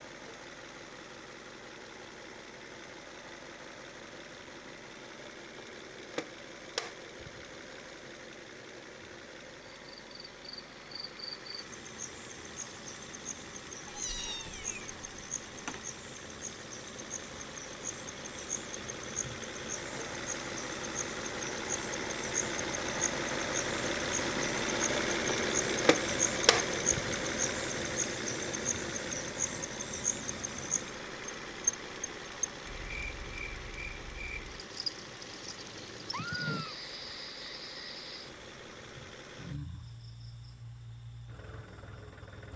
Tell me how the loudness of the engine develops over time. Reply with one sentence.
The volume of the engine goes up, then down.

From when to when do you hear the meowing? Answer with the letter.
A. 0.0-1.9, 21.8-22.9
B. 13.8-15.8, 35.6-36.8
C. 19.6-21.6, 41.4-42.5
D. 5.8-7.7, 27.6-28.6
B.